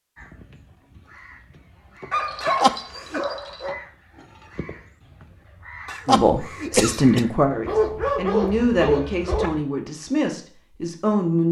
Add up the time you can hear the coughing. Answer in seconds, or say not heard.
2 s.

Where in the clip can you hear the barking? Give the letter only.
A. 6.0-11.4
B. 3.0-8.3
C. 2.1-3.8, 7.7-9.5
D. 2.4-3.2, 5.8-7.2
C.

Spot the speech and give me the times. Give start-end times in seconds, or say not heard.
6.0-11.4.